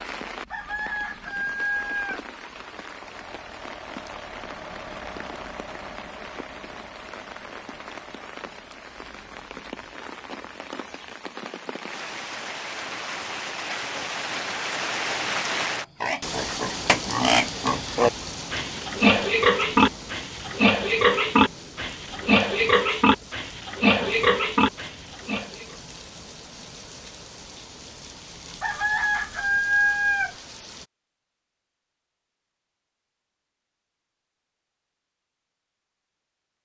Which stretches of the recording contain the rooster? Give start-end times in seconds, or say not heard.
0.5-2.2, 28.6-30.4.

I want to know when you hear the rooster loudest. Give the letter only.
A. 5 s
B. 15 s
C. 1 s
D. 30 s
D.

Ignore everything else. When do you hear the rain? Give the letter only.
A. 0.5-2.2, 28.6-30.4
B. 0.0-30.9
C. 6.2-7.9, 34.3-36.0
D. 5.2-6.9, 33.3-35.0
B.